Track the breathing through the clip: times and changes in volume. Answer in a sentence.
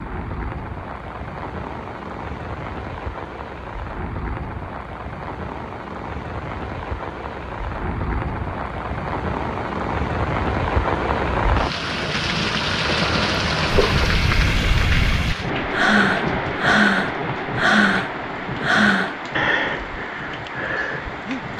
The breathing can be heard from 13.9 to 21.5 s, getting louder then quieter.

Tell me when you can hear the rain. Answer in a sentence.
The rain can be heard from 0.0 to 21.5 s.